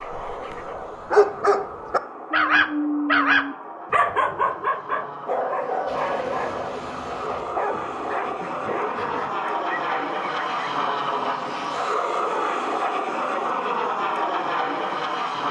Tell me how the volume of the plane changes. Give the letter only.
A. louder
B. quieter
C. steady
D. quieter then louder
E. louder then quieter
A.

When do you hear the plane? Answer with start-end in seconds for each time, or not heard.
0.0-15.4.